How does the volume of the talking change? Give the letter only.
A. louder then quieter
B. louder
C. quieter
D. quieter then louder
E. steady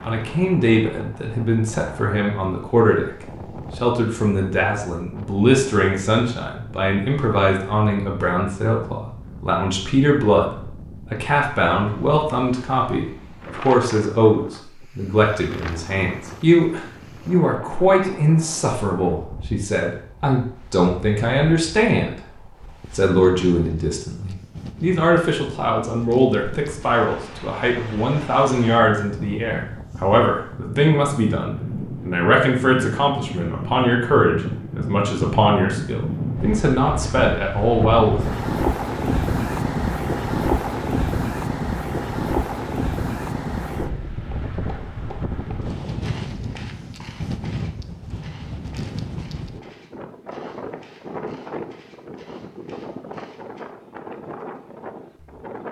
E.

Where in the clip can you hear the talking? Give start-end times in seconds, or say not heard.
0.0-22.2, 22.9-38.2.